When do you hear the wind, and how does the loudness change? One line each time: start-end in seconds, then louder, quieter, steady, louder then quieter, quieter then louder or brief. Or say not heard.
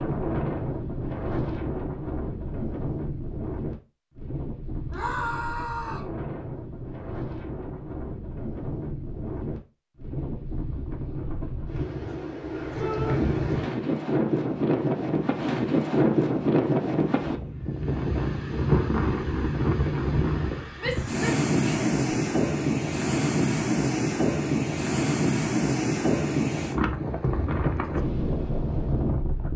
0.0-29.5 louder.